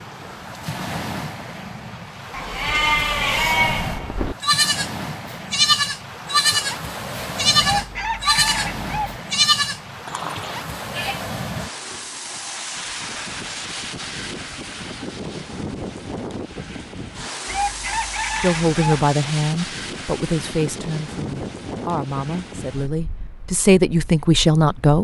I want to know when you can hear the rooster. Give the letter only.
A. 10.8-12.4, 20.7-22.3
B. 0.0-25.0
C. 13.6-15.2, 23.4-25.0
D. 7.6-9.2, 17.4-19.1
D.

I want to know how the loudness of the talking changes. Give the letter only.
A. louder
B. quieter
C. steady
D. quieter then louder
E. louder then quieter
D.